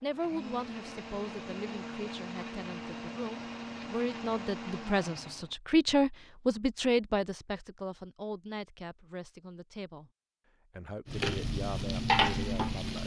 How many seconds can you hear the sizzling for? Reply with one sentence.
You can hear the sizzling for 2 seconds altogether.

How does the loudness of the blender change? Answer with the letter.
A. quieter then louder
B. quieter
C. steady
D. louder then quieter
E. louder
C.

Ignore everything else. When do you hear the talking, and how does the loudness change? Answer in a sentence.
The talking can be heard from 0.0 to 10.1 s, getting louder then quieter; and briefly from 10.8 to 13.0 s.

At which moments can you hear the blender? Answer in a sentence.
The blender can be heard from 0.0 to 5.5 s.